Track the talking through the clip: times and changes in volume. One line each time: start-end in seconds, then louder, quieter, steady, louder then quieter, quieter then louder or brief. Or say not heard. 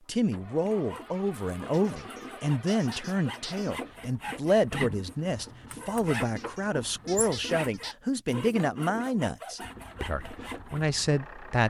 0.1-11.6 steady.